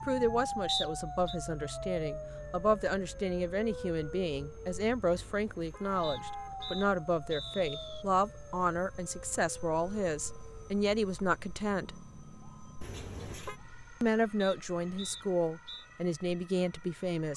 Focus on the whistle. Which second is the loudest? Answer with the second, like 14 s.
1 s.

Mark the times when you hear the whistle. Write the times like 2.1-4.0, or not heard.
0.7-1.4, 6.0-8.1, 14.4-15.8.